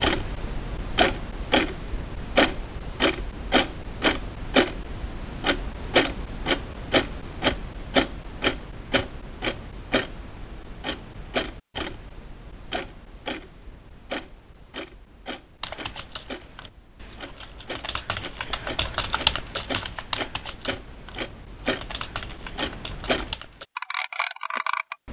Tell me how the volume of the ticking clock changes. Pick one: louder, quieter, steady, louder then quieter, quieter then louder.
quieter then louder.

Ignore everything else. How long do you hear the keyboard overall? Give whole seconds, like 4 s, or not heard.
8 s.